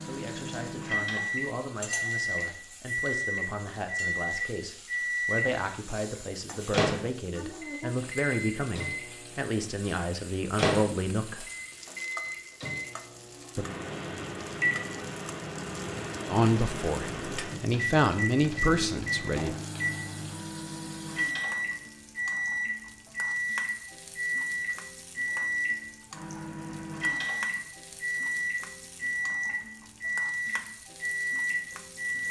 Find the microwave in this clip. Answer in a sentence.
You can hear the microwave from 0.0 to 32.2 s.